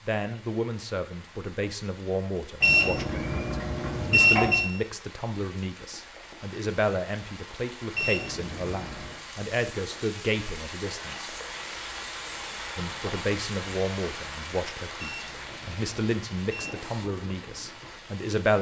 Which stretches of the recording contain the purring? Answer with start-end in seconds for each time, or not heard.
not heard.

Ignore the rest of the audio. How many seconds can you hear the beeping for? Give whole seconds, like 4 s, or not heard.
5 s.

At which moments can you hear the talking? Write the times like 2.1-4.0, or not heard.
0.0-11.3, 12.8-18.5.